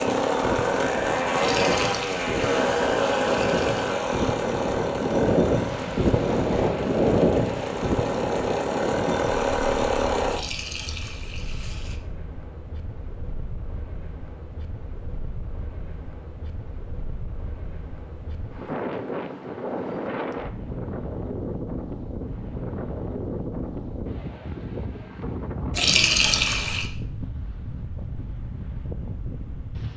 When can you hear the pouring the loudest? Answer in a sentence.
The volume of the pouring peaks at 26 seconds.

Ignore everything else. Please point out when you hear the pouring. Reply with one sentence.
You can hear the pouring from 1.4 to 3.9 s, from 10.2 to 12.0 s and from 25.7 to 26.9 s.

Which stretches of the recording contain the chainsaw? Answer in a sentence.
The chainsaw can be heard from 0.0 to 10.4 s.